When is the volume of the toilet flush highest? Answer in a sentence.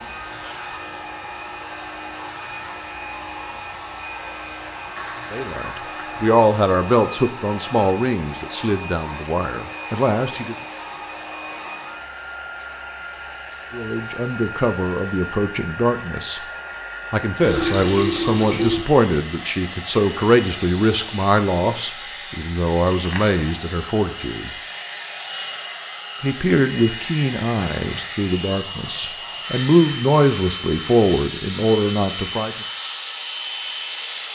The loudest moment of the toilet flush is at 18 seconds.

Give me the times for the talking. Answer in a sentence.
You can hear the talking from 5.3 to 10.6 s, from 13.7 to 16.4 s, from 17.1 to 24.6 s and from 26.2 to 32.6 s.